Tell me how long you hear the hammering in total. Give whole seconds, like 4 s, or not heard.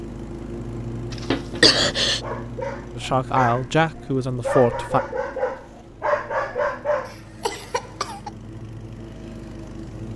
not heard.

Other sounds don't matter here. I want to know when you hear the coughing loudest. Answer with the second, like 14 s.
2 s.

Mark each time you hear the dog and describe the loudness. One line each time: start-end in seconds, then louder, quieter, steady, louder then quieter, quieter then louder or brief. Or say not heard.
2.0-7.5 louder.